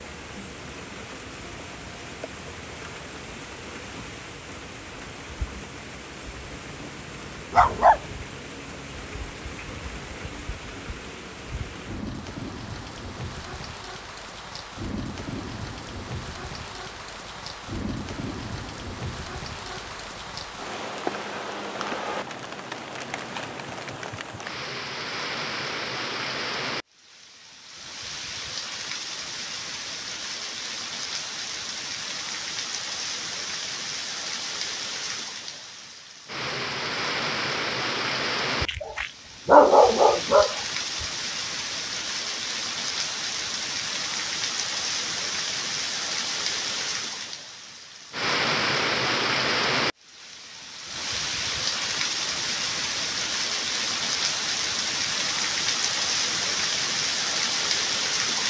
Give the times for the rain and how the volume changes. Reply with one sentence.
You can hear the rain from 0.0 to 58.4 s, getting louder.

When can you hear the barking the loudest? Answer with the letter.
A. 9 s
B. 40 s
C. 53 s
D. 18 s
B.